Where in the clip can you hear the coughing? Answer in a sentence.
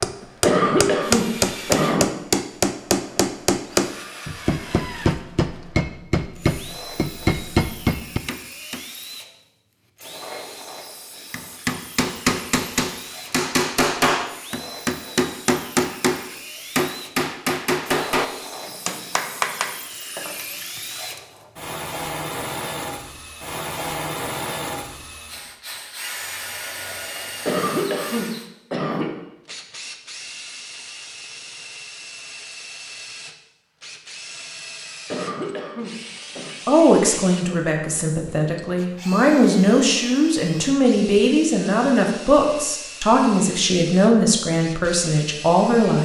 You can hear the coughing from 0.4 to 2.0 s, from 27.4 to 29.1 s and from 35.1 to 36.5 s.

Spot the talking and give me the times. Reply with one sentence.
You can hear the talking from 36.6 to 45.9 s.